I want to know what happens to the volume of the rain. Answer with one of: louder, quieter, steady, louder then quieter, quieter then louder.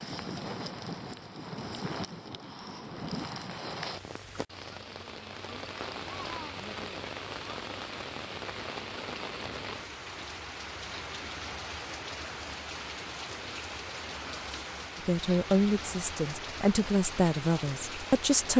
steady.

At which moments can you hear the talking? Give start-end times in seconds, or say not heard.
15.1-18.5.